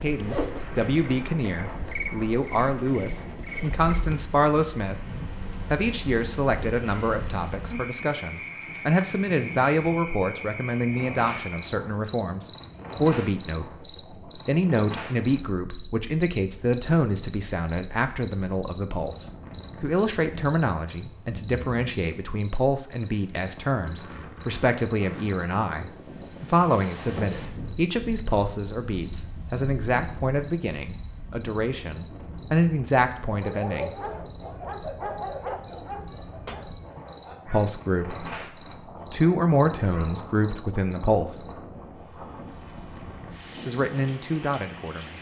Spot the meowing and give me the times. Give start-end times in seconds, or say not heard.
36.0-37.0.